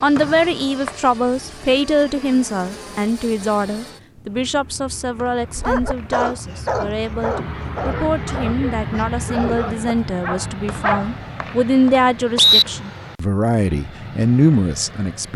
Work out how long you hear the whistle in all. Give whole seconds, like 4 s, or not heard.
4 s.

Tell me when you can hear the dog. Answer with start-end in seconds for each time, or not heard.
5.5-11.2.